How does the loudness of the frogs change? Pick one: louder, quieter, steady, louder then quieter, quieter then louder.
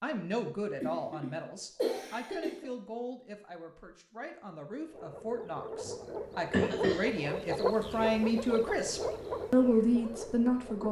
louder then quieter.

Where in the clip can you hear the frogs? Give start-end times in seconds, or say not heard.
4.8-10.8.